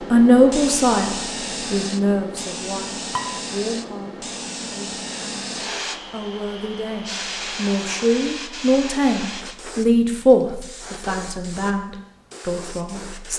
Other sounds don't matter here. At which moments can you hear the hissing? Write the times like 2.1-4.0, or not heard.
0.0-13.3.